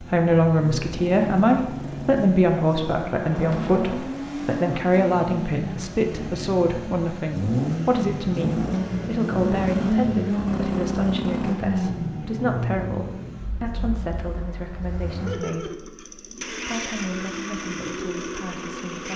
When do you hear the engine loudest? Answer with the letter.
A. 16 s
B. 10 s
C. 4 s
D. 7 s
B.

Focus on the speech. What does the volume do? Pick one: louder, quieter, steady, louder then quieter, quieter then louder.
quieter.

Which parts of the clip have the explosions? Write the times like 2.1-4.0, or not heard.
3.0-4.2.